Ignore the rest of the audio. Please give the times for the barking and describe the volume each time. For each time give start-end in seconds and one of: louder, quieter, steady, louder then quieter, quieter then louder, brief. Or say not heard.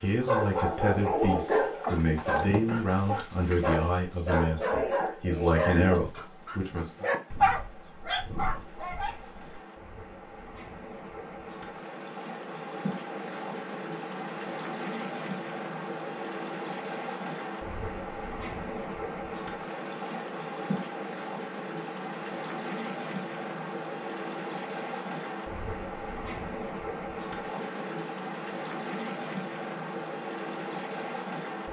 0.2-9.4 steady.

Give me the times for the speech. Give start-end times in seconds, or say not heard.
0.0-7.0.